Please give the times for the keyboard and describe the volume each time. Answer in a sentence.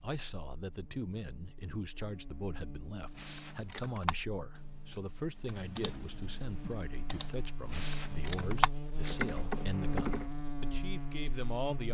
You can hear the keyboard from 3.1 to 10.2 s, getting quieter then louder.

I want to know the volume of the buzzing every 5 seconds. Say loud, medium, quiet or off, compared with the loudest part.
quiet, loud, loud.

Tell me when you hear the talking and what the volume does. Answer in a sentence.
You can hear the talking from 0.0 to 11.8 s, at a steady volume.